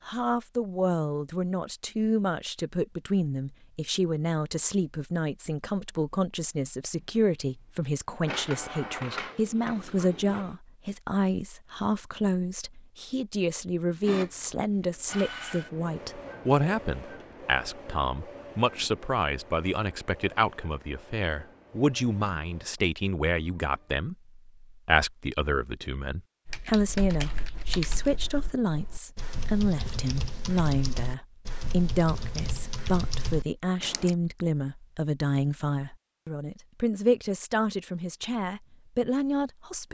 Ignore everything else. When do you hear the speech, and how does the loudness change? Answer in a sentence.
You can hear the speech from 0.1 to 39.8 s, at a steady volume.